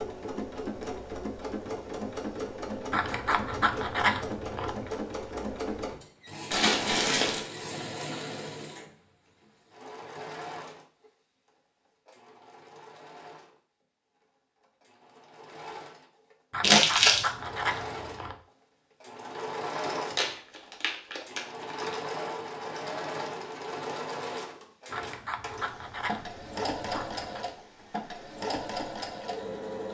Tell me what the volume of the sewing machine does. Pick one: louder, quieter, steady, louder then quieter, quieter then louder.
quieter then louder.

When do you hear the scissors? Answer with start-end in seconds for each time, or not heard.
2.9-5.0, 16.5-18.4, 24.9-27.4.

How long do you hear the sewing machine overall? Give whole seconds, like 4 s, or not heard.
30 s.